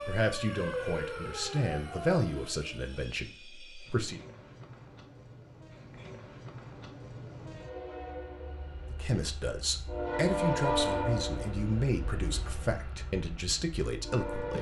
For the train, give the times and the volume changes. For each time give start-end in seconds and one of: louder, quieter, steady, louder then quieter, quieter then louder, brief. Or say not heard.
0.0-14.5 louder then quieter.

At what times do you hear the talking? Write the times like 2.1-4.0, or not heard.
0.0-4.2, 8.9-14.5.